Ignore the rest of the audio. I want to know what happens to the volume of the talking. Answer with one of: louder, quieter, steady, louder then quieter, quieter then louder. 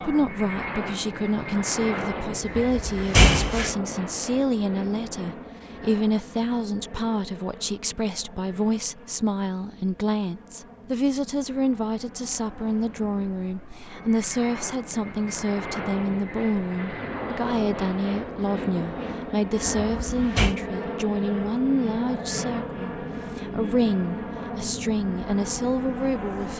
steady.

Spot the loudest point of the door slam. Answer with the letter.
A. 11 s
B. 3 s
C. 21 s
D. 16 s
B.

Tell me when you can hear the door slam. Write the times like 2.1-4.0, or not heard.
2.5-3.7, 19.7-20.6.